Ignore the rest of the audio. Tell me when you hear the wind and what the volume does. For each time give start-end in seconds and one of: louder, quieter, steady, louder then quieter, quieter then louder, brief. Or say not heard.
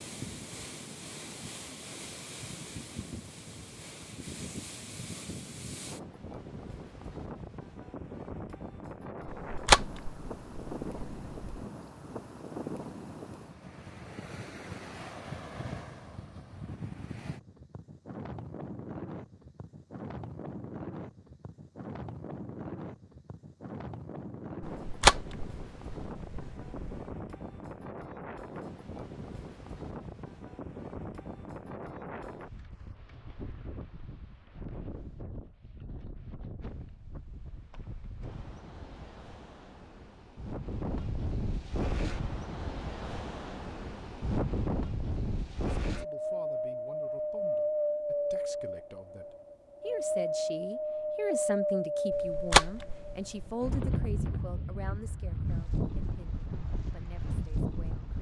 0.0-58.1 louder.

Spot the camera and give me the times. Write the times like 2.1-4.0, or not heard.
9.2-11.7, 24.6-27.0, 52.1-53.5.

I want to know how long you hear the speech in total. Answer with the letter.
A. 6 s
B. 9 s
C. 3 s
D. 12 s
D.